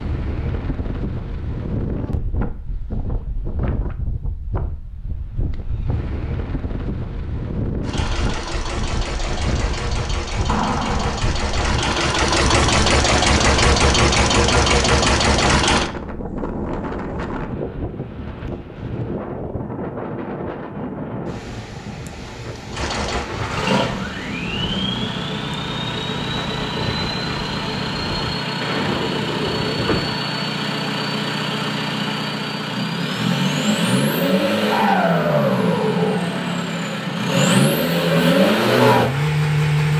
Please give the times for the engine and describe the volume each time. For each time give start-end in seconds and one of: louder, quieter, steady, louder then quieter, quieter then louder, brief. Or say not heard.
7.8-15.9 louder
22.7-39.9 louder.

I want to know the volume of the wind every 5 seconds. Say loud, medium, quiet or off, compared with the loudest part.
loud, loud, loud, loud, loud, loud, off, off.